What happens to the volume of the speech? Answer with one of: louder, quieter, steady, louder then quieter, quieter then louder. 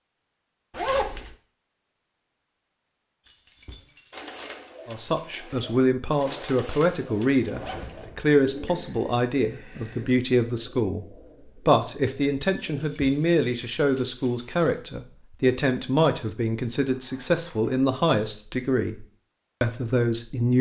steady.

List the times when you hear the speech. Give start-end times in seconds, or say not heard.
4.8-11.1, 11.7-20.5.